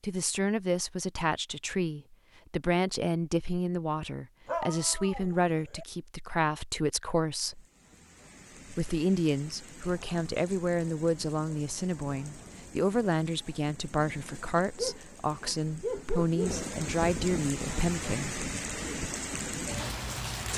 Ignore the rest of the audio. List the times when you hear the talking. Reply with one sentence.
The talking can be heard from 0.0 to 7.7 s and from 8.7 to 18.4 s.